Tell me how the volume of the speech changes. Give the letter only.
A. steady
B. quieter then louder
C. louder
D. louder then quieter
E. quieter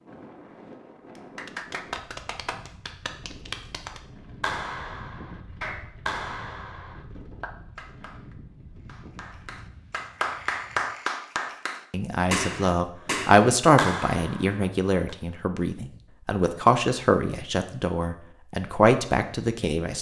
B.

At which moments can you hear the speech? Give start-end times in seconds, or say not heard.
11.9-19.9.